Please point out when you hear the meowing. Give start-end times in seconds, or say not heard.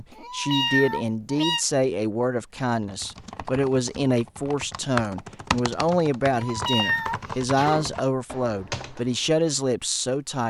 0.1-1.6, 6.3-7.2.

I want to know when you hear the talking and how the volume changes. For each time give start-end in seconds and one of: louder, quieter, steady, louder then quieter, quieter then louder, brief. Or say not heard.
0.0-10.4 steady.